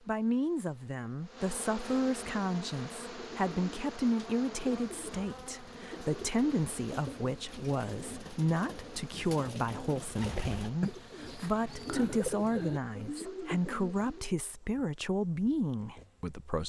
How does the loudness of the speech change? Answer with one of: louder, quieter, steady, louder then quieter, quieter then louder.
steady.